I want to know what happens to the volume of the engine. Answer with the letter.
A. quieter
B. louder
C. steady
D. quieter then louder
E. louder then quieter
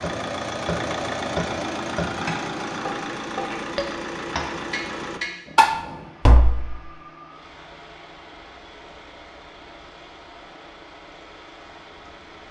A.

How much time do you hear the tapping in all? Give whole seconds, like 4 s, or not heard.
7 s.